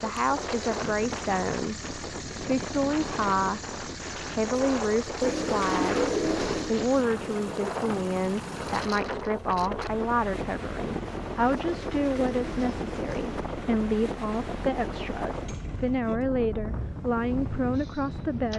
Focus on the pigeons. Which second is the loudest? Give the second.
6 s.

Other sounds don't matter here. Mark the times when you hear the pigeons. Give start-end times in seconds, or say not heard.
5.2-6.8, 11.4-13.4.